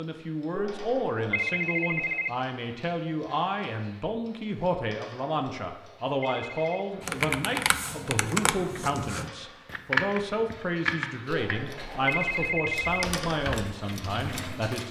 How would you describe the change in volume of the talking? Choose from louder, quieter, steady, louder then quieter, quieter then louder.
steady.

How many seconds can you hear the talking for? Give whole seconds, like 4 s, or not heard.
15 s.